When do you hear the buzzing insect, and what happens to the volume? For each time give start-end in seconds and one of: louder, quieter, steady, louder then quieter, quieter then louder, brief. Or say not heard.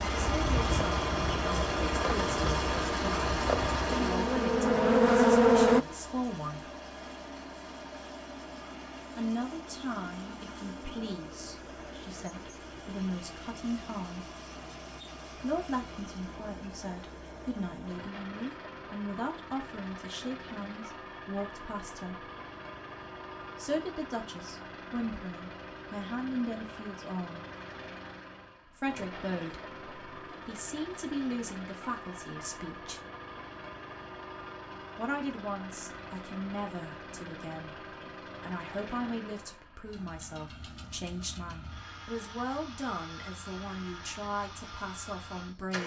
0.1-5.8 louder.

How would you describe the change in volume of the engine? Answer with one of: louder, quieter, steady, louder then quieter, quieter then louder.
quieter.